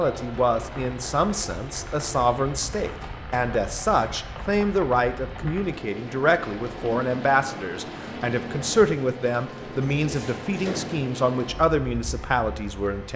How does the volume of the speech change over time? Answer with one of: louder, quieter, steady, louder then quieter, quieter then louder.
steady.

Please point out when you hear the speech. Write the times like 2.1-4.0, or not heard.
0.0-13.1.